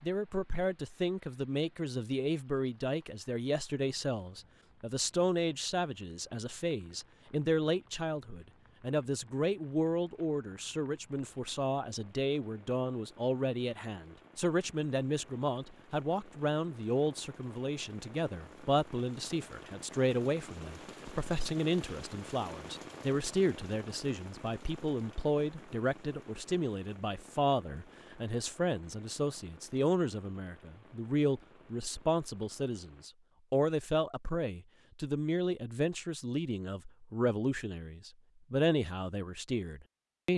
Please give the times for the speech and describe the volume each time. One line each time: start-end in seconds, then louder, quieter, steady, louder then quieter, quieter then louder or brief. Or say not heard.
0.0-40.3 steady.